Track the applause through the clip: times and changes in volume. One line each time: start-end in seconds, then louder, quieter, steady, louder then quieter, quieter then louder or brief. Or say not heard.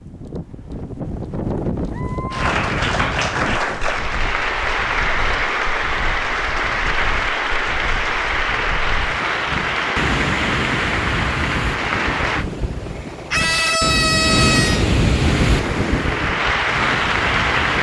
2.3-12.4 steady
15.2-17.7 brief.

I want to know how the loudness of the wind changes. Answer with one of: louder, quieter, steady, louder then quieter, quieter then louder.
quieter then louder.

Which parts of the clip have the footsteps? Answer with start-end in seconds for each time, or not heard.
not heard.